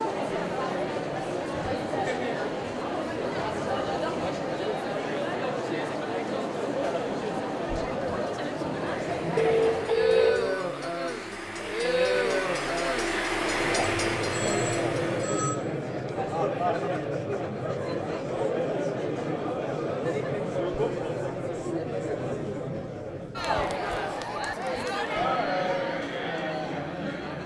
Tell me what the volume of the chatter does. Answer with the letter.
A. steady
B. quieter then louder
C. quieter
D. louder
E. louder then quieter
A.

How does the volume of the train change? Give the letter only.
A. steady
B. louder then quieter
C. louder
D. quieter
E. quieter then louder
C.